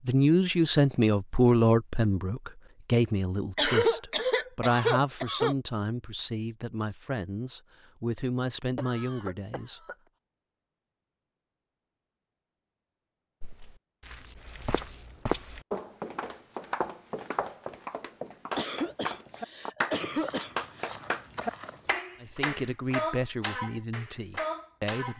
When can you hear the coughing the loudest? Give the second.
4 s.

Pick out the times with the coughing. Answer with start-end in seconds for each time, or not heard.
3.5-5.5, 8.8-9.9, 18.6-20.9.